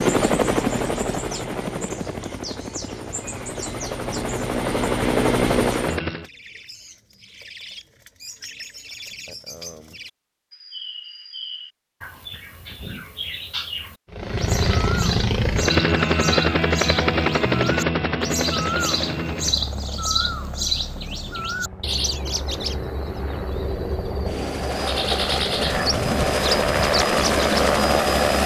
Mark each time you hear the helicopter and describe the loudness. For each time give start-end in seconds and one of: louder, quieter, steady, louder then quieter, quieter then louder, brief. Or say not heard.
0.0-6.2 quieter then louder
14.1-28.4 quieter then louder.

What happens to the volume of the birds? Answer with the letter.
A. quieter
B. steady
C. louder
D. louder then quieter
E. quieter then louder
C.